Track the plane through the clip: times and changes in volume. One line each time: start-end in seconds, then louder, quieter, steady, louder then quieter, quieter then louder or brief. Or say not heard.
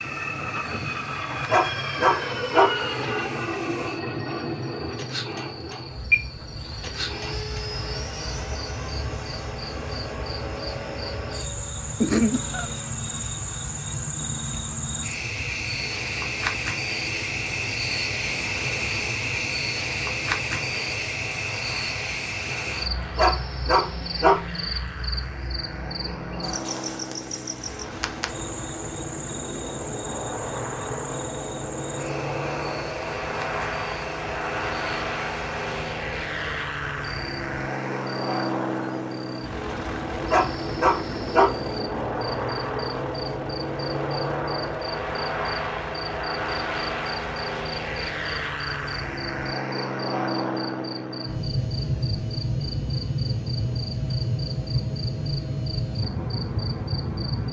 0.0-57.4 quieter then louder.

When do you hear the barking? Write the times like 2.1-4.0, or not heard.
1.4-2.6, 23.1-24.4, 40.2-41.5.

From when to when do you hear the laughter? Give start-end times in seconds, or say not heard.
12.0-12.7.